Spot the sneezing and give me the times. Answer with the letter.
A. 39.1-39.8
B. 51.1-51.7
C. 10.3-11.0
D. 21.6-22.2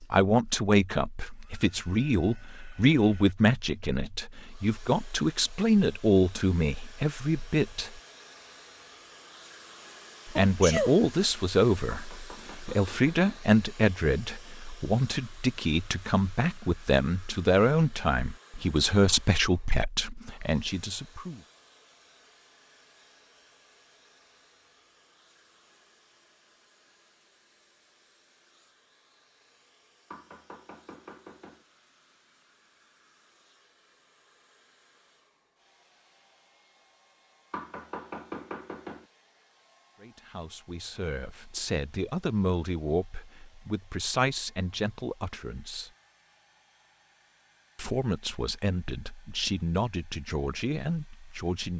C.